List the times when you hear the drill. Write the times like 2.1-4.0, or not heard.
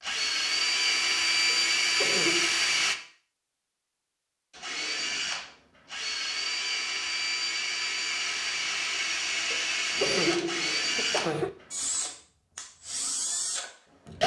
0.0-3.0, 4.5-14.2.